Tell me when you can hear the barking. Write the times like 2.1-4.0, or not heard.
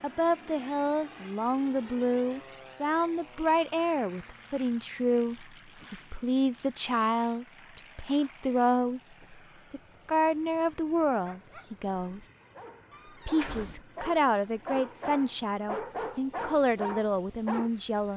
11.1-17.7.